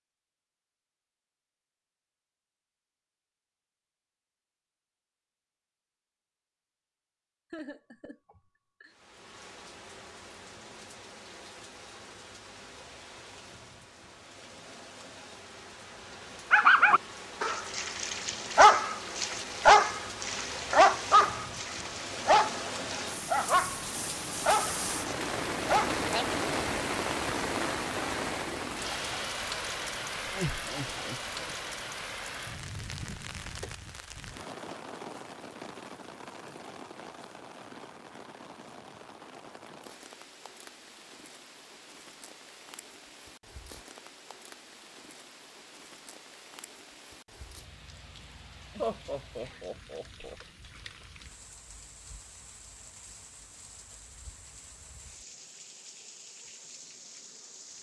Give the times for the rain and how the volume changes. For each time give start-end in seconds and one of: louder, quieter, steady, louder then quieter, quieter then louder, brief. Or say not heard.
8.8-57.7 louder then quieter.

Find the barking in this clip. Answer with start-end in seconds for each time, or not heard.
16.5-26.2.